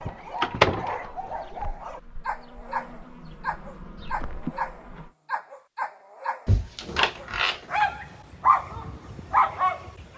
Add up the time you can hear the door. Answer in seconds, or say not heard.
2 s.